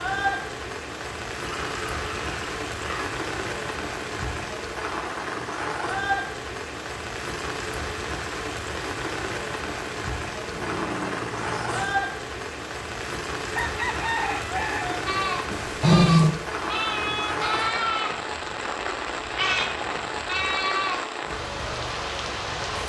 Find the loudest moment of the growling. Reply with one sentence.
The loudest moment of the growling is at 16 seconds.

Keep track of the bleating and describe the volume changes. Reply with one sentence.
The volume of the bleating stays about the same.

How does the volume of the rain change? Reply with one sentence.
The volume of the rain stays about the same.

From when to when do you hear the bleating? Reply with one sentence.
The bleating can be heard from 15.1 to 21.0 s.